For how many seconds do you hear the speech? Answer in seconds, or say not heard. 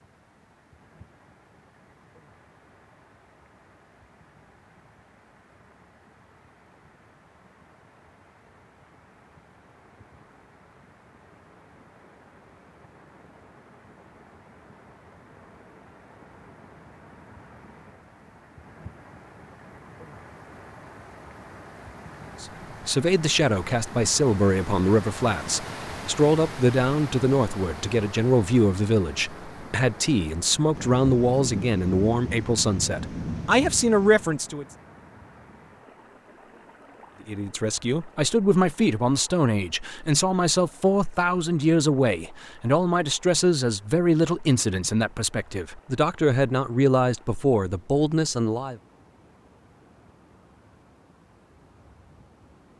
24 s.